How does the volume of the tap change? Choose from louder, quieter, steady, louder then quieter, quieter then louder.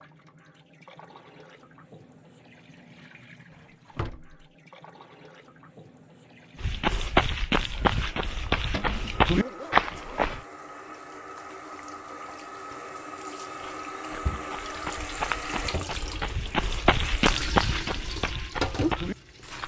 louder.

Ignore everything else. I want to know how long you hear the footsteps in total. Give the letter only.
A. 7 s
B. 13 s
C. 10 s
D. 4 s
C.